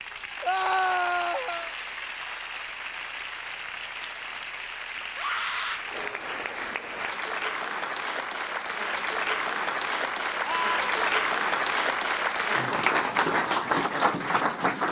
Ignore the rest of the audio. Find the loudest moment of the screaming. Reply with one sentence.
The loudest moment of the screaming is at 1 second.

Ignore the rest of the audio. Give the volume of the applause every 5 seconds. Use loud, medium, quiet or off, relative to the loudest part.
medium, medium, loud.